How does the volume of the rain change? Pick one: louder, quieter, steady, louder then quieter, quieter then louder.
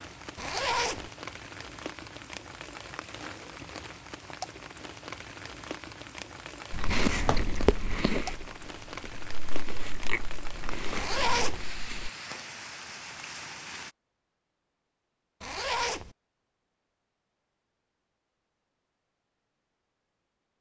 steady.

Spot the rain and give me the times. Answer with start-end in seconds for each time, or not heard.
0.0-13.9.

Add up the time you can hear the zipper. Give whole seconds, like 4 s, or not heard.
2 s.